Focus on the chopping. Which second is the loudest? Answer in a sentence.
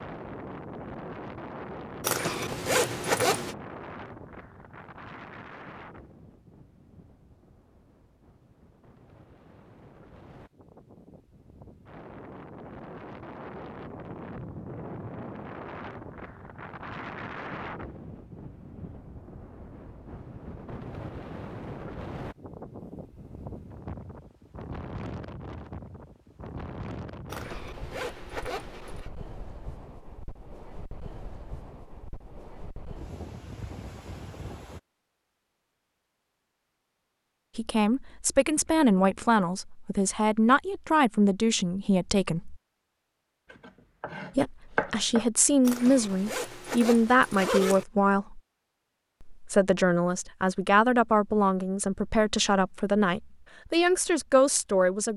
The loudest moment of the chopping is at 45 seconds.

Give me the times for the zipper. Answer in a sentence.
You can hear the zipper from 2.0 to 3.5 s, from 27.2 to 29.1 s and from 45.6 to 47.9 s.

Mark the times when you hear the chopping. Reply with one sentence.
The chopping can be heard from 43.5 to 45.2 s.